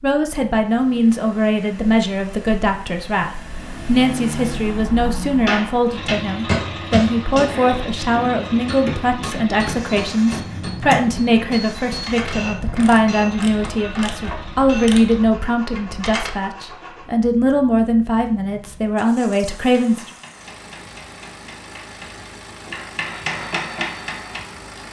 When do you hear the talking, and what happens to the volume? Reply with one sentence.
The talking can be heard from 0.0 to 20.1 s, at a steady volume.